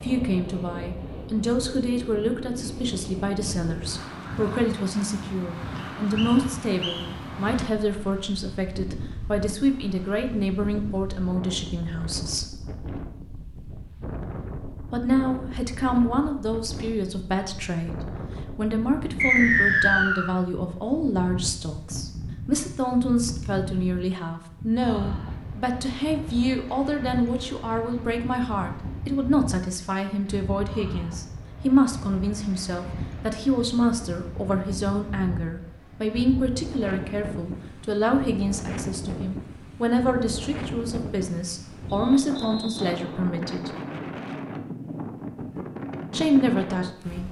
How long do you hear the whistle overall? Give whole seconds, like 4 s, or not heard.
4 s.